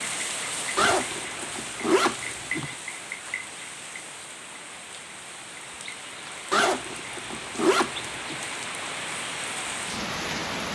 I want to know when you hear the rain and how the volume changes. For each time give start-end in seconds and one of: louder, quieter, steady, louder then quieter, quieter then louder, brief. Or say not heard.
0.0-10.7 quieter then louder.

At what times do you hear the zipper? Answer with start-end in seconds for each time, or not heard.
0.8-2.8, 6.5-8.4.